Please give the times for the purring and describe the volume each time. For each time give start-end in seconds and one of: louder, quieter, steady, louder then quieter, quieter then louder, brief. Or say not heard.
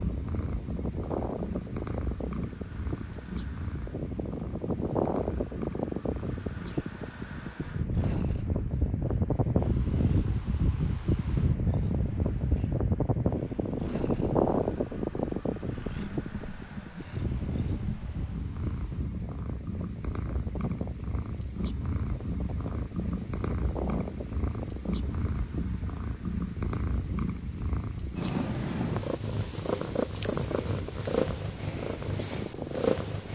0.0-33.3 quieter then louder.